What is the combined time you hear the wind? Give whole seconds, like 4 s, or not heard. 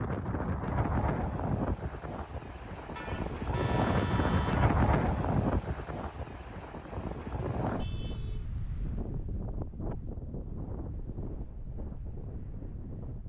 13 s.